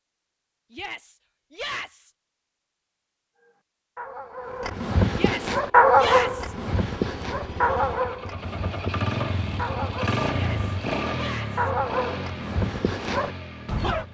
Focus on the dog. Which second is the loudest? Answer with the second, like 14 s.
6 s.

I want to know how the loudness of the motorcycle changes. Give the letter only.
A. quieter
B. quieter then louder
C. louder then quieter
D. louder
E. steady
C.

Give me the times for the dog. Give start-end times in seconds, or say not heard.
3.4-14.0.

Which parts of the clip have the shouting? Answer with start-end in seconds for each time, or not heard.
0.7-2.1, 5.1-6.5, 10.3-11.7.